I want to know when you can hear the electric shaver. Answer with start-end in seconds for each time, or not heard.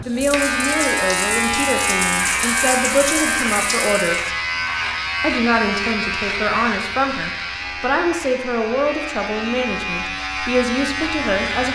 0.0-11.6.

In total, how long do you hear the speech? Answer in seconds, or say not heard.
11 s.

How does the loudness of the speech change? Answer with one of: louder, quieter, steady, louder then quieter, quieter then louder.
steady.